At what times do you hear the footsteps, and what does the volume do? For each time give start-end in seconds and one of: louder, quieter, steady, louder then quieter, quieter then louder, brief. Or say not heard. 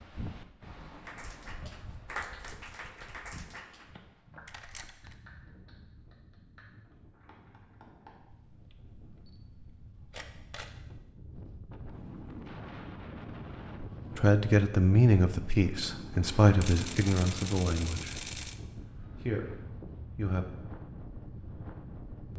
not heard.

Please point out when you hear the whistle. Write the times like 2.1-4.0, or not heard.
not heard.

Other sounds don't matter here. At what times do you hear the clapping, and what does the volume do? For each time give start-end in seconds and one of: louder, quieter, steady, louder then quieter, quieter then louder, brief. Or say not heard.
1.1-8.1 quieter.